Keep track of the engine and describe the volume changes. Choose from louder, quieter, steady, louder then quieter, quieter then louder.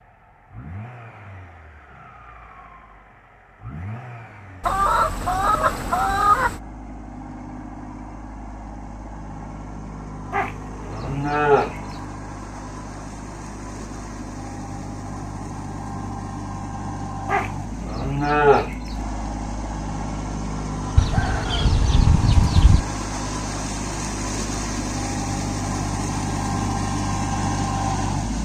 louder.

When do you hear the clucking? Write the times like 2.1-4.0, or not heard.
4.6-6.6, 20.9-22.8.